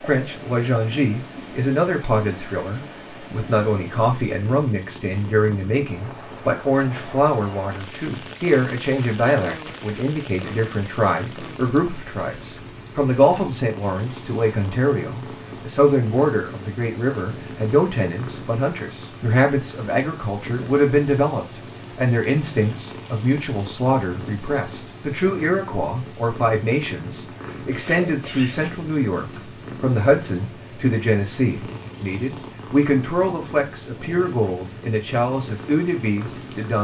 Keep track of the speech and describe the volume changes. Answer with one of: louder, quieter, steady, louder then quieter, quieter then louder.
steady.